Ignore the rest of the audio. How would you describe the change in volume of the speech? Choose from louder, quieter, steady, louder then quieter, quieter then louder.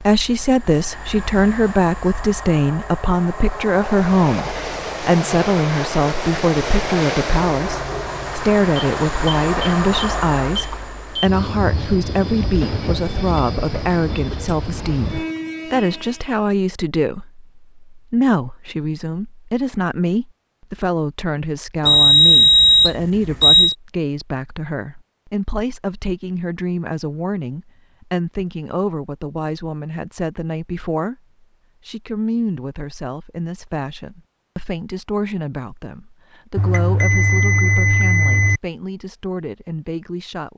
quieter.